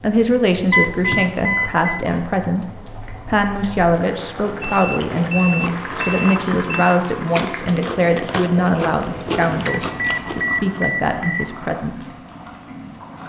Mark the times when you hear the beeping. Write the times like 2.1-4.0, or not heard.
0.7-2.0, 4.6-7.0, 9.8-11.6.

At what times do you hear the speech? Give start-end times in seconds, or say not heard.
0.0-12.1.